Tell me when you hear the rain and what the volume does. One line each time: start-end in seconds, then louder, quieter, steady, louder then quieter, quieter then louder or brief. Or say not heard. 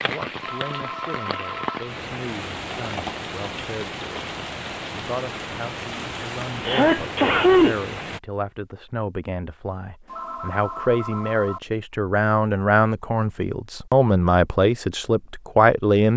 0.0-8.2 steady.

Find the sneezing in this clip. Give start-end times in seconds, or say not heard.
6.7-7.8.